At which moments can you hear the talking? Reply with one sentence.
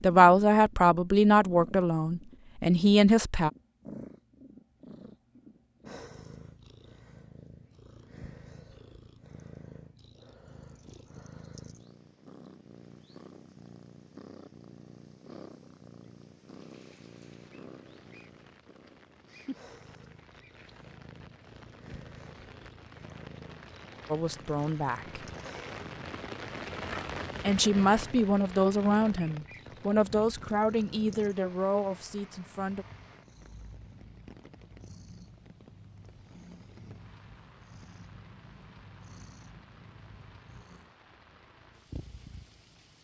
You can hear the talking from 0.0 to 3.5 s, from 24.1 to 25.2 s and from 27.4 to 32.9 s.